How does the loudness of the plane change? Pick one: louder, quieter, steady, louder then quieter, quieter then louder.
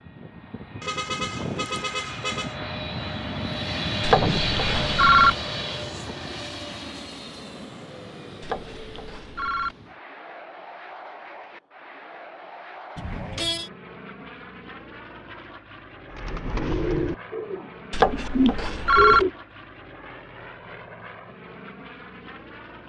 quieter.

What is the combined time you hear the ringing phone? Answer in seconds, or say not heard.
4 s.